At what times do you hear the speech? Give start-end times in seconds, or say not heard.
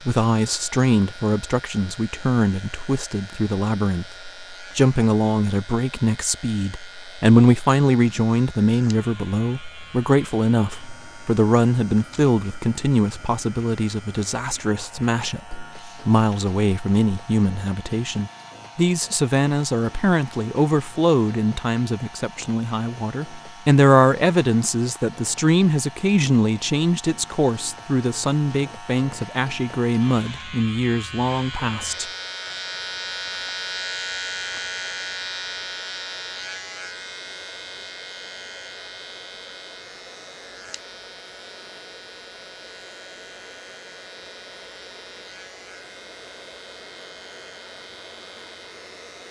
0.1-32.0.